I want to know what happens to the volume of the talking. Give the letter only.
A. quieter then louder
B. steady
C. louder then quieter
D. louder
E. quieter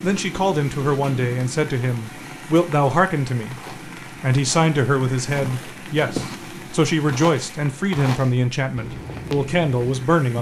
B.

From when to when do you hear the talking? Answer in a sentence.
You can hear the talking from 0.0 to 3.5 s and from 4.2 to 10.3 s.